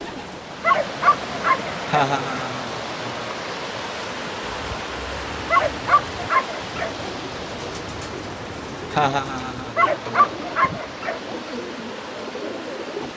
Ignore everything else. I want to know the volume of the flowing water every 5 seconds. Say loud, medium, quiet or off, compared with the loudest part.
loud, loud, medium.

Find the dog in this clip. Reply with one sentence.
You can hear the dog from 0.6 to 2.5 s, from 5.5 to 7.1 s and from 9.8 to 11.3 s.